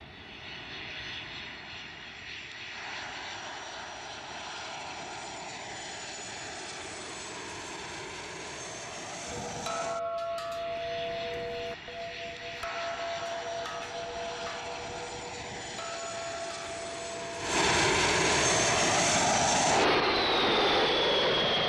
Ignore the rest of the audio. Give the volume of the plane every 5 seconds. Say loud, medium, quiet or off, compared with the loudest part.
quiet, quiet, quiet, loud, loud.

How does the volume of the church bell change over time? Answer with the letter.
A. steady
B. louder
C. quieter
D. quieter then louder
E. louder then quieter
C.